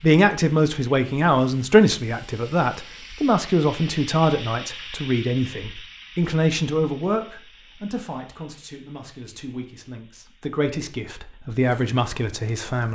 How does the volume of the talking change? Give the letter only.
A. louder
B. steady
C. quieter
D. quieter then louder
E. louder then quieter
D.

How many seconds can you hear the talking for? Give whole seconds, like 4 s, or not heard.
13 s.